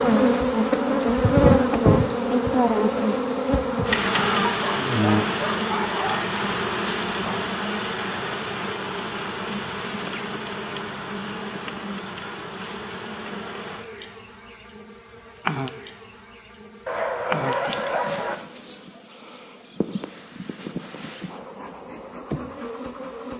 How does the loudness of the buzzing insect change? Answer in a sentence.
The loudness of the buzzing insect goes down.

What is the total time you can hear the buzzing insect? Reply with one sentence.
You can hear the buzzing insect for 23 seconds altogether.